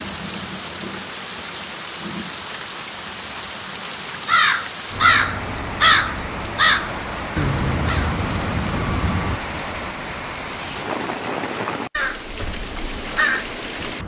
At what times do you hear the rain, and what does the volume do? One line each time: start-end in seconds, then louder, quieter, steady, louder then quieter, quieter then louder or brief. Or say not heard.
0.0-14.0 steady.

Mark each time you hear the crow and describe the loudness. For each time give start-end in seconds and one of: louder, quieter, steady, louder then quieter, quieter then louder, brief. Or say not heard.
4.2-9.6 quieter
11.9-14.0 brief.